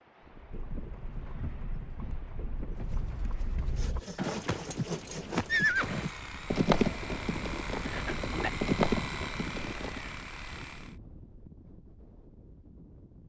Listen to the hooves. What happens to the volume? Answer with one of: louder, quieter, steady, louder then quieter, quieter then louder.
louder.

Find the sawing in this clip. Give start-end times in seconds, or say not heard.
3.8-10.9.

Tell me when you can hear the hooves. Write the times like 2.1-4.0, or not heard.
0.3-10.1.